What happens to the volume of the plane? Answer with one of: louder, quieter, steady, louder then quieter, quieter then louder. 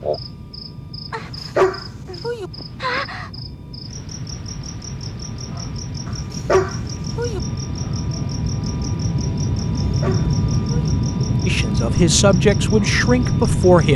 louder.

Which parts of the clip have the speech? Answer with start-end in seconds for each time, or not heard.
11.4-13.9.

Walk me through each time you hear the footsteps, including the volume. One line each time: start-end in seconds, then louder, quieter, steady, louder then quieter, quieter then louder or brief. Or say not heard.
not heard.